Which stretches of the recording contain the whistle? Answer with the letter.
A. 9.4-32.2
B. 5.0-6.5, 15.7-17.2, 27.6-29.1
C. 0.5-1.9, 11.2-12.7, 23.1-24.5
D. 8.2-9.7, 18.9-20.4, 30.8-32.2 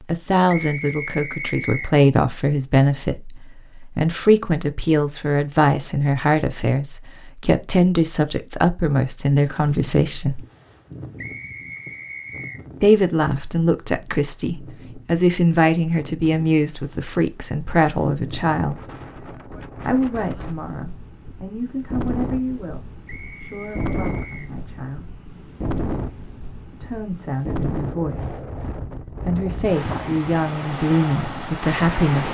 C.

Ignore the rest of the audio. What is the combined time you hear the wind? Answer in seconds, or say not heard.
23 s.